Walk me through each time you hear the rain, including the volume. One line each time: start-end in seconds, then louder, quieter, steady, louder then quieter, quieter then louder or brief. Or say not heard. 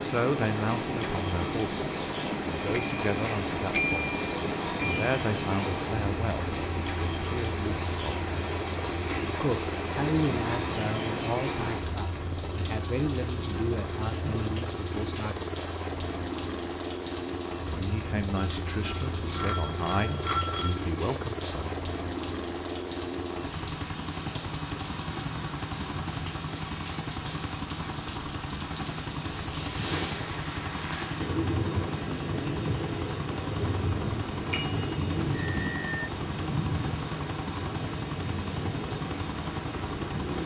0.0-40.4 steady.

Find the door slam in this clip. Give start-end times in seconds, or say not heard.
not heard.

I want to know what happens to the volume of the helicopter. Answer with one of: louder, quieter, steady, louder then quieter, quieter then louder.
steady.